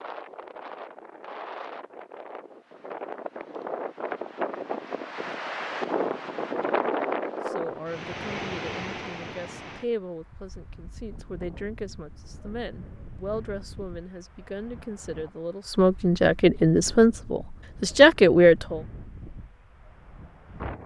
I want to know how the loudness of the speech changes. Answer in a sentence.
The volume of the speech goes up.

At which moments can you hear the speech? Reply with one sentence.
You can hear the speech from 7.3 to 18.8 s.